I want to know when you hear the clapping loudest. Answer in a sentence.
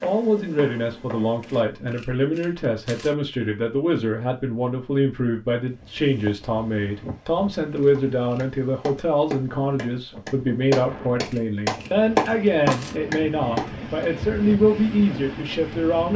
The loudest moment of the clapping is at 12 seconds.